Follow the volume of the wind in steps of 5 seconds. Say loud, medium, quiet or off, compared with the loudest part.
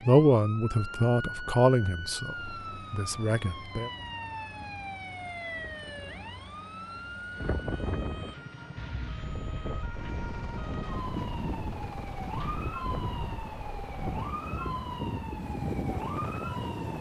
quiet, medium, loud, loud.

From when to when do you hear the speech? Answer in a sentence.
You can hear the speech from 0.0 to 3.9 s.